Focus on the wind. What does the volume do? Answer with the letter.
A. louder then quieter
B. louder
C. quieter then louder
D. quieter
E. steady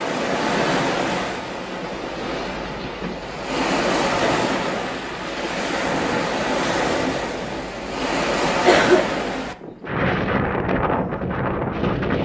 E.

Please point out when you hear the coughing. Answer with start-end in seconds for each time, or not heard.
8.7-9.5.